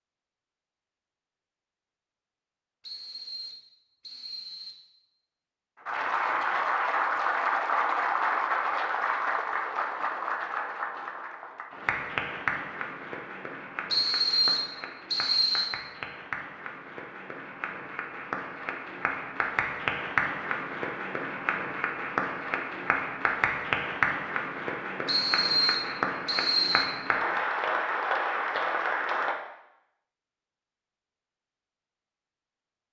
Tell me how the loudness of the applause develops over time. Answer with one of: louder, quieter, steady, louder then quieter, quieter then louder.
quieter then louder.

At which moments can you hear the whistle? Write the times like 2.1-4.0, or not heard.
2.8-4.8, 13.9-15.7, 25.1-26.9.